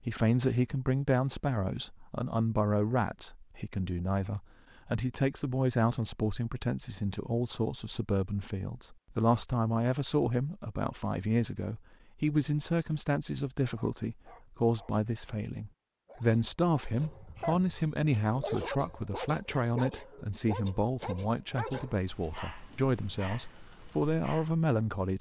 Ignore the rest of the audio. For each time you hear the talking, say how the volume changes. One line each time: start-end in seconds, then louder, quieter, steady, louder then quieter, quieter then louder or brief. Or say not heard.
0.1-25.1 steady.